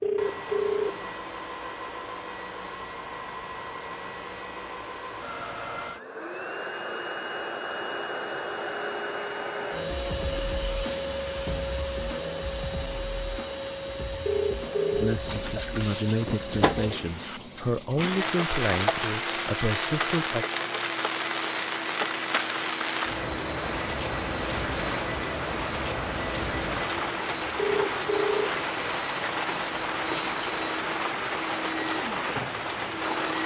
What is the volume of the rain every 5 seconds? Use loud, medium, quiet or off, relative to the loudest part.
off, off, off, loud, loud, loud, loud.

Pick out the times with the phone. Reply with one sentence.
The phone can be heard from 0.0 to 1.1 s, from 14.2 to 15.2 s and from 27.6 to 28.6 s.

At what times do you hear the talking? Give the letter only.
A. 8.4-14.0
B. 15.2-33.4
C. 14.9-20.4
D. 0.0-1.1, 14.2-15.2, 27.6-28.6
C.